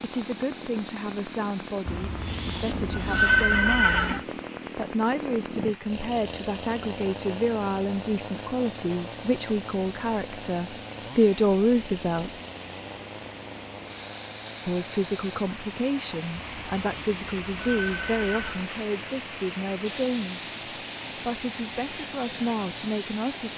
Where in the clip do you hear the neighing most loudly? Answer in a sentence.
The volume of the neighing peaks at 3 seconds.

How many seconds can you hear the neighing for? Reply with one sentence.
You can hear the neighing for 5 seconds altogether.